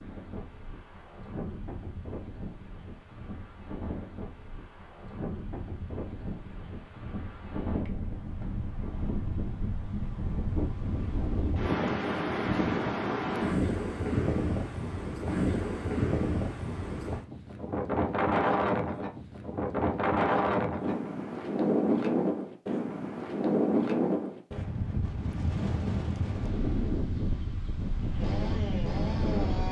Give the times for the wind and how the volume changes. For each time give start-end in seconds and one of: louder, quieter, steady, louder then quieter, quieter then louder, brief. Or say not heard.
0.0-29.6 louder.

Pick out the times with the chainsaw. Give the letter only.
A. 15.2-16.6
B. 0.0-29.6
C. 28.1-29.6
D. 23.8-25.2
C.